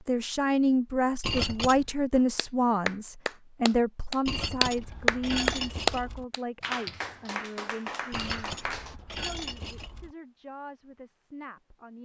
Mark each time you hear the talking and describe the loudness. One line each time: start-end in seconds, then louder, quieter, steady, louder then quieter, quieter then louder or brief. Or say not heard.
0.1-12.0 quieter.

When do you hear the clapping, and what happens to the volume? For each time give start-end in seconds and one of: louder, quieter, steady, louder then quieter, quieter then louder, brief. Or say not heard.
2.1-8.9 louder then quieter.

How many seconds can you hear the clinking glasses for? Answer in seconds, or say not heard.
5 s.